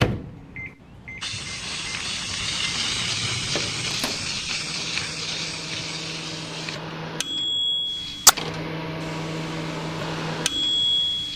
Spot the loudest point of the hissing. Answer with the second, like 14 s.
3 s.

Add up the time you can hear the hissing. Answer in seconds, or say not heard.
11 s.